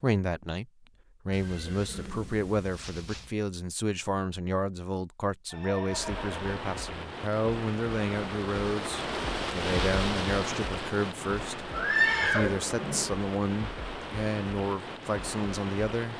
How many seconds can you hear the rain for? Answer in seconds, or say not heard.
10 s.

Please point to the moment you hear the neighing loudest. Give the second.
12 s.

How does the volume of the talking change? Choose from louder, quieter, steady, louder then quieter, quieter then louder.
steady.